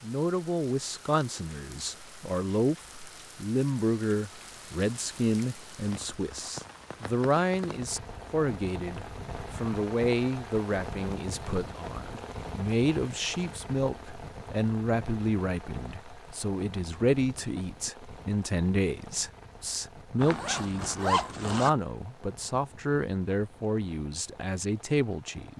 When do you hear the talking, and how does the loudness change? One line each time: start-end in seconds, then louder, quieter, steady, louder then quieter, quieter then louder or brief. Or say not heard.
0.0-25.5 steady.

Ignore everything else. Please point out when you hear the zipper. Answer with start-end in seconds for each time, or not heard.
20.1-21.7.